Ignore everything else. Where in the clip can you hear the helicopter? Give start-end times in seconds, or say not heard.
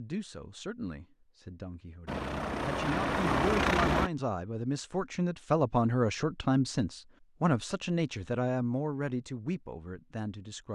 2.0-4.1.